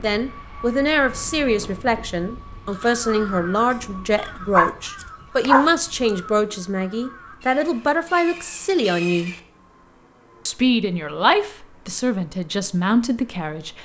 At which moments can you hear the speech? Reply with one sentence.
You can hear the speech from 0.0 to 9.3 s and from 10.4 to 13.8 s.